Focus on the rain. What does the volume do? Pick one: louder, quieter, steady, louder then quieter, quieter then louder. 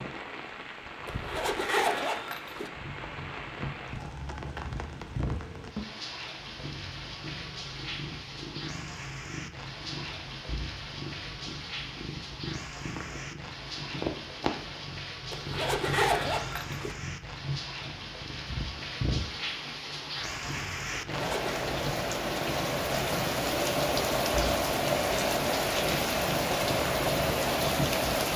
louder.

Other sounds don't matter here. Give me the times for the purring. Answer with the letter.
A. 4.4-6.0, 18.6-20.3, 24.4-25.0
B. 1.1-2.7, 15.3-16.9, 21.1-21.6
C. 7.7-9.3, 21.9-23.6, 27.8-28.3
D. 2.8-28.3
D.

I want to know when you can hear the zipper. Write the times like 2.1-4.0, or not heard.
1.1-2.7, 15.3-16.9, 21.1-21.6.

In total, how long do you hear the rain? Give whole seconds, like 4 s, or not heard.
28 s.